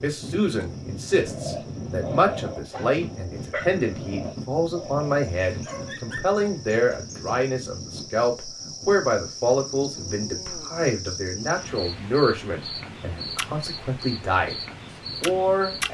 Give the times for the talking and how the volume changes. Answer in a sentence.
The talking can be heard from 0.0 to 14.6 s, at a steady volume; and briefly from 15.2 to 15.8 s.